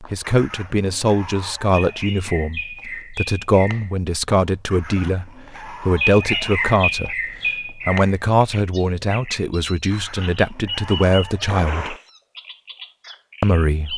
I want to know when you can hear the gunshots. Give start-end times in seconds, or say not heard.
11.4-12.1.